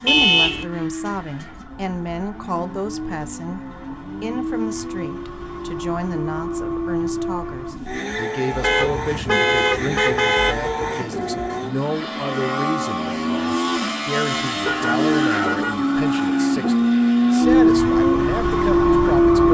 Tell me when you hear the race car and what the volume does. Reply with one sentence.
You can hear the race car from 0.0 to 19.4 s, getting louder.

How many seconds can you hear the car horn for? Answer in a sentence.
The car horn can be heard for 4 seconds in total.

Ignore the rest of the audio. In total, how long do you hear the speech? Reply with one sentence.
The speech can be heard for 19 seconds in total.